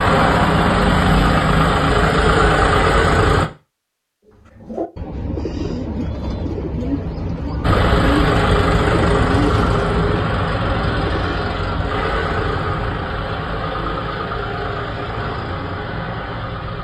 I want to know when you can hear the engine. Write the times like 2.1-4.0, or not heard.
0.0-3.5, 7.6-16.7.